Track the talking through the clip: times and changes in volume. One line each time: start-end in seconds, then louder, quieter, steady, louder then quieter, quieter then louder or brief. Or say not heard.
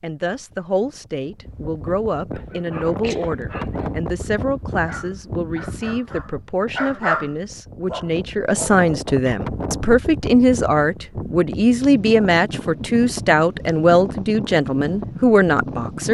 0.0-16.0 louder.